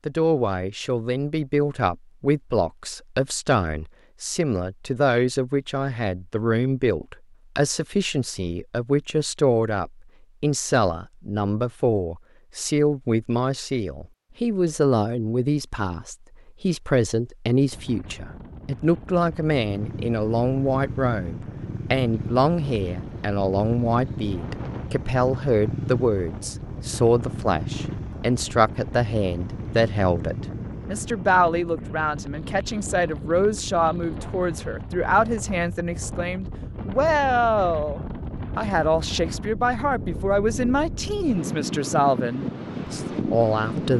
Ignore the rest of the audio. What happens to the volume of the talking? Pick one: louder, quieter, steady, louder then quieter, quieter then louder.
steady.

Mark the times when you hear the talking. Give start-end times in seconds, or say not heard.
0.1-43.9.